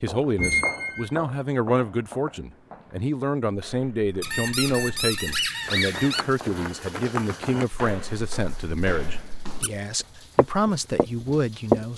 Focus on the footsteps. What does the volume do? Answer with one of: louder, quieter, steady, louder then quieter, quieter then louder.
quieter then louder.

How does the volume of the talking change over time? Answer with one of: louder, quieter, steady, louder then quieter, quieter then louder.
steady.